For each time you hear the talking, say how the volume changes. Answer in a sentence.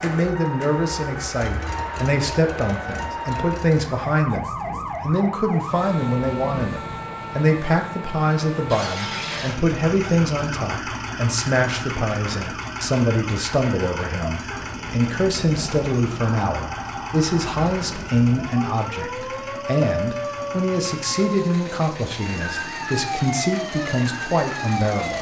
The talking can be heard from 0.0 to 25.1 s, at a steady volume.